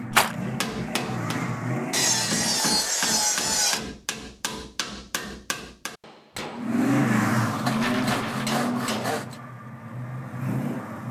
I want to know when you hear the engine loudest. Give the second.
7 s.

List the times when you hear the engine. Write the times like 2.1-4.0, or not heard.
0.0-2.7, 6.5-11.0.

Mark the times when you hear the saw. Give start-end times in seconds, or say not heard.
1.9-3.9, 7.5-9.3.